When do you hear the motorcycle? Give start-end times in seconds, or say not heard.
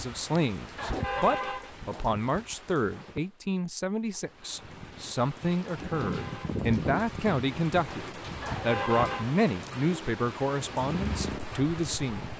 10.8-12.3.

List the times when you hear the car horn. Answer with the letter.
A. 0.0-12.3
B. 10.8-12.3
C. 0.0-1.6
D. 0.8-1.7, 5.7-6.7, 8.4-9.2
D.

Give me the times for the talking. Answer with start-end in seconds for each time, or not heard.
0.0-12.3.